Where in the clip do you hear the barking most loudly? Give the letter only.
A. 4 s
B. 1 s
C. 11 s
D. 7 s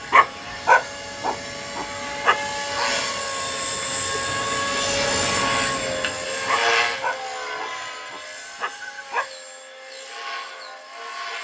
B.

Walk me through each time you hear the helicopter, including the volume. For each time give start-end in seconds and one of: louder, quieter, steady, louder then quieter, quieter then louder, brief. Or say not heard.
0.0-11.3 louder then quieter.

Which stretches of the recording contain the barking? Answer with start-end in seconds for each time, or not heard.
0.1-2.9, 6.5-9.3.